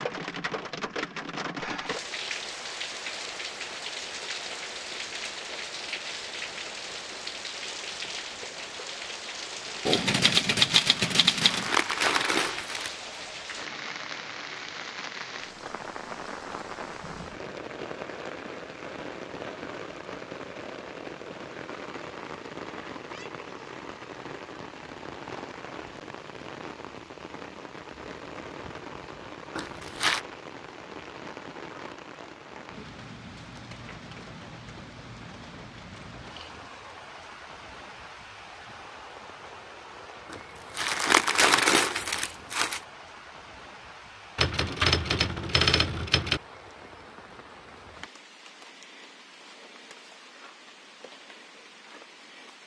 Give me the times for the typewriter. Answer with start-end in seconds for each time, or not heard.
9.8-11.7, 44.4-46.4.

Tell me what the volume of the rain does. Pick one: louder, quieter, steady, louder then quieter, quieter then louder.
quieter.